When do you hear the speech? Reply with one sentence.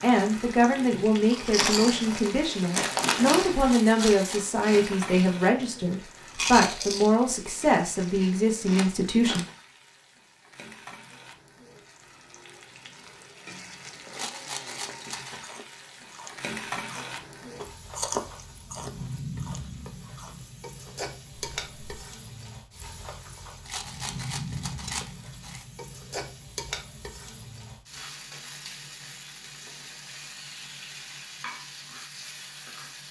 You can hear the speech from 0.0 to 9.4 s.